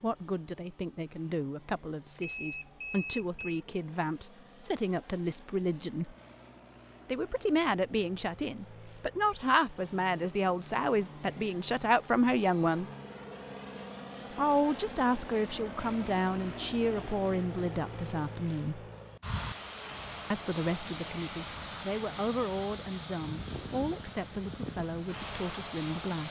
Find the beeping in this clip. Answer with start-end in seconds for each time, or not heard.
2.2-3.6.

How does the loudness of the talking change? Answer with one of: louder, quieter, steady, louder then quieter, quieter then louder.
louder then quieter.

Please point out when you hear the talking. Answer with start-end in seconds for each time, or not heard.
0.0-6.2, 7.0-12.9, 14.3-18.9, 20.3-26.2.